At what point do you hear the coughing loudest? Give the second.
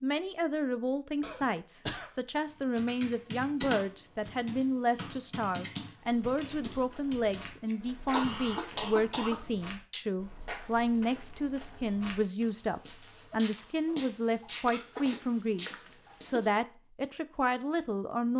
8 s.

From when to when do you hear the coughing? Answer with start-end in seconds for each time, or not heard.
1.2-2.1, 7.7-9.4, 14.7-16.5.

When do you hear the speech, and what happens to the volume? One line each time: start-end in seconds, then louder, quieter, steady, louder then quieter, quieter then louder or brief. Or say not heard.
0.0-18.3 steady.